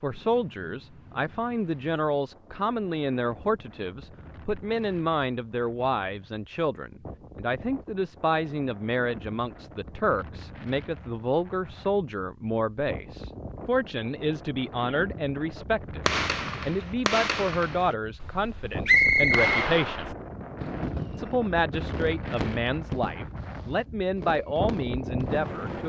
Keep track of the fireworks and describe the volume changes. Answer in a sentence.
The volume of the fireworks goes down.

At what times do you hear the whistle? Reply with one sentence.
You can hear the whistle from 18.9 to 19.6 s.